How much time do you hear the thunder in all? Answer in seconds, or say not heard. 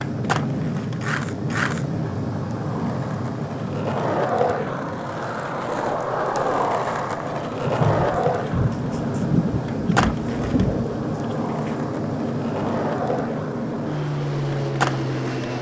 4 s.